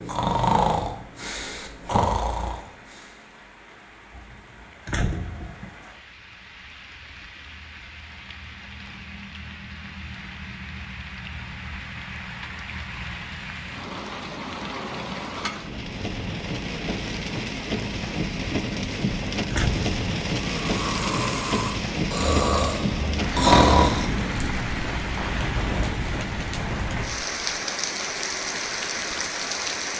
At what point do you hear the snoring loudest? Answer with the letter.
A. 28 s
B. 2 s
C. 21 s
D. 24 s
D.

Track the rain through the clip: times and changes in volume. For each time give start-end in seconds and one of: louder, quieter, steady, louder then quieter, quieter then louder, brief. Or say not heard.
0.0-29.9 louder.